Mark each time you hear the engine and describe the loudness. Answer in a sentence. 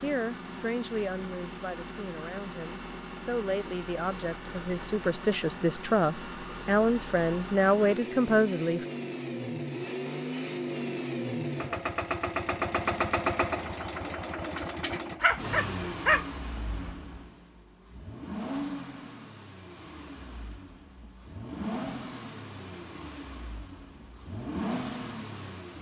The engine can be heard from 0.0 to 25.7 s, getting louder then quieter.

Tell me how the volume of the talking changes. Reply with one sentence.
The loudness of the talking goes up.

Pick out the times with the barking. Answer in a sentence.
You can hear the barking from 15.2 to 16.9 s.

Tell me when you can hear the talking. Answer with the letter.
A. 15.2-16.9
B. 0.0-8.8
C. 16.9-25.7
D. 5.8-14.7
B.